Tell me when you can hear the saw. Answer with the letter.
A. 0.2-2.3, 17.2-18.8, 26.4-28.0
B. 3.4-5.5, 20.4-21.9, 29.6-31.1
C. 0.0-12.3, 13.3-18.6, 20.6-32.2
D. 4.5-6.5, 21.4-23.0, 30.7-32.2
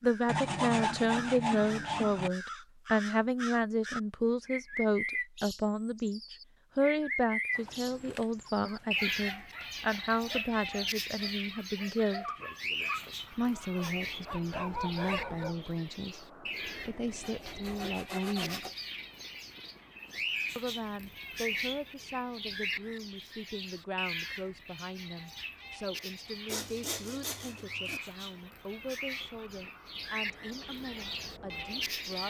A.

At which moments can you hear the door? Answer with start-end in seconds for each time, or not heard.
not heard.